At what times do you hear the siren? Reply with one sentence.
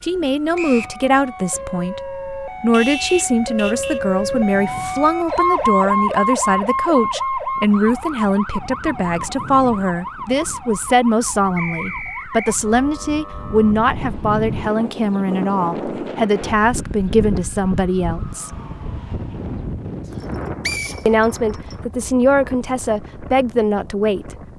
You can hear the siren from 0.0 to 19.6 s.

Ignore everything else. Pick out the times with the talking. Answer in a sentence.
The talking can be heard from 0.0 to 18.6 s and from 21.1 to 24.4 s.